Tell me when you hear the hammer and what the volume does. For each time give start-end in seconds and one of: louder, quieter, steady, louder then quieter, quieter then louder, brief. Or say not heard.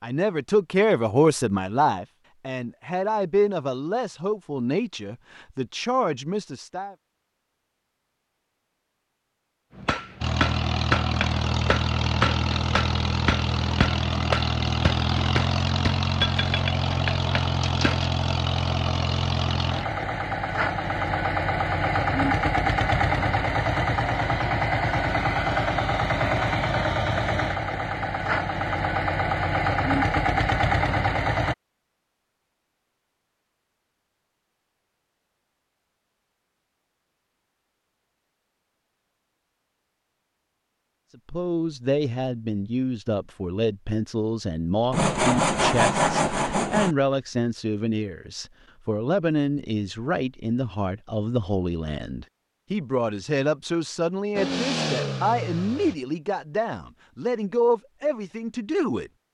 9.8-18.1 steady.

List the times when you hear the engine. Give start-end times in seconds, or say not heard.
10.2-31.6, 54.4-56.0.